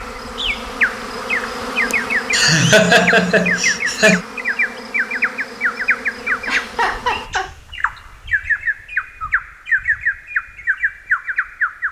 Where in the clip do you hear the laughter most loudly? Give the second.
3 s.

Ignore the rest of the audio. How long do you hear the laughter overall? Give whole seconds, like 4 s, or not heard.
3 s.